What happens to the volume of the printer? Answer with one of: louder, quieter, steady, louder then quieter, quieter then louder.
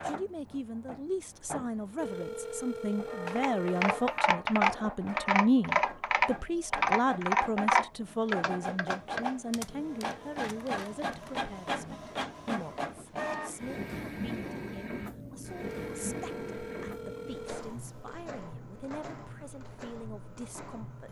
louder then quieter.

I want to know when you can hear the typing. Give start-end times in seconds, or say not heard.
3.3-11.3.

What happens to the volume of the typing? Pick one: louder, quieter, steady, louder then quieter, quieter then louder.
quieter.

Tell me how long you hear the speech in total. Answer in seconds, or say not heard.
21 s.